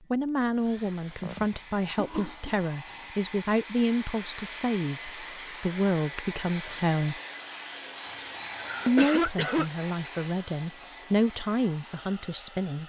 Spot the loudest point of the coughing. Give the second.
9 s.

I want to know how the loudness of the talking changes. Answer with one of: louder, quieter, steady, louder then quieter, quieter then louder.
steady.